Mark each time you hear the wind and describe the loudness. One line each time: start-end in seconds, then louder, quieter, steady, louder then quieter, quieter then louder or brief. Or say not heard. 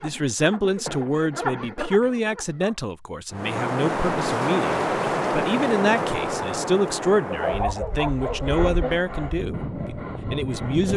3.3-10.9 quieter then louder.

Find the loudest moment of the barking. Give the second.
8 s.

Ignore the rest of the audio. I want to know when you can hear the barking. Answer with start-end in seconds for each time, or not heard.
0.8-2.8, 7.3-8.6.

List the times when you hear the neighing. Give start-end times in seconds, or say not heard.
not heard.